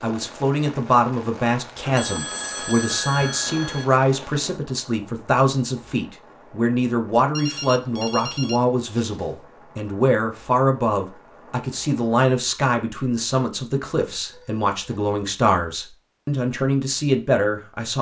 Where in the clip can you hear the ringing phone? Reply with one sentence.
You can hear the ringing phone from 1.9 to 3.9 s, from 7.3 to 9.3 s and from 14.2 to 15.1 s.